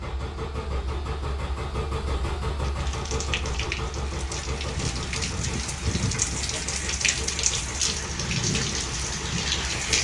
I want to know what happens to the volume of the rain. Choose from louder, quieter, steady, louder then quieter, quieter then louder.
louder.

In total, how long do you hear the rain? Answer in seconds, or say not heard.
7 s.